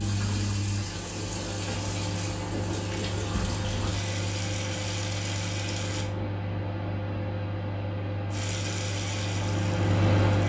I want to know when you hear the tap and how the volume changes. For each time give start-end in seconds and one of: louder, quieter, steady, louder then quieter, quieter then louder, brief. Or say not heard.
0.0-6.1 steady
8.3-10.4 brief.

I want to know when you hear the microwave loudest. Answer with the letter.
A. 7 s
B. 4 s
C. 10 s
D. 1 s
C.